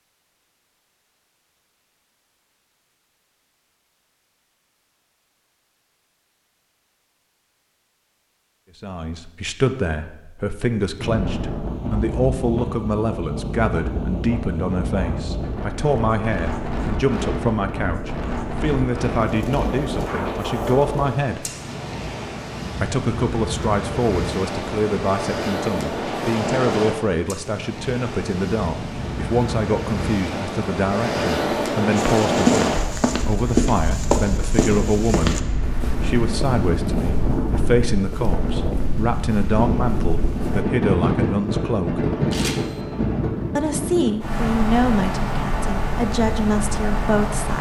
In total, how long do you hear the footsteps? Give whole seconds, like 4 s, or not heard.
9 s.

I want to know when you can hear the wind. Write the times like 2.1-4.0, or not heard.
10.9-47.5.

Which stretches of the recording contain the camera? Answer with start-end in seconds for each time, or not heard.
42.3-42.9.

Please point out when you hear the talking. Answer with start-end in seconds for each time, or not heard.
8.8-21.5, 22.8-42.1, 43.5-47.5.